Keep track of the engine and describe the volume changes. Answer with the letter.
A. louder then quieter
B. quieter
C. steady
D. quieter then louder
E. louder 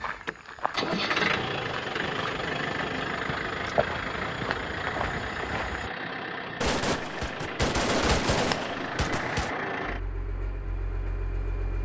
B.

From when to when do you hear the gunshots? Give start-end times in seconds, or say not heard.
6.6-9.6.